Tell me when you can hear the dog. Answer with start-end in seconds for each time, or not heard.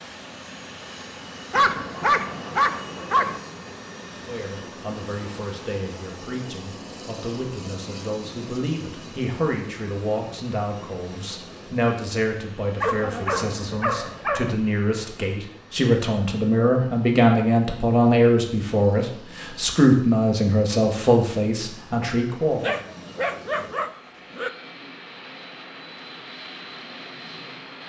1.5-3.4, 12.8-14.6, 22.5-24.5.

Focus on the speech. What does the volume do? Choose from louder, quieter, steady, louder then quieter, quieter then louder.
louder.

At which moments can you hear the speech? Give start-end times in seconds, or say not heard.
4.2-22.8.